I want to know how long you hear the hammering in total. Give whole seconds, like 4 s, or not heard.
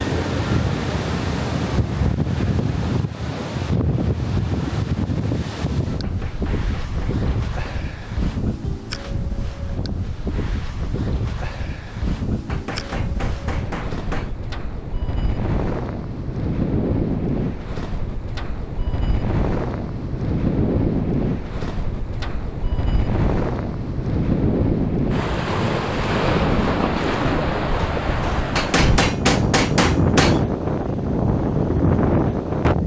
6 s.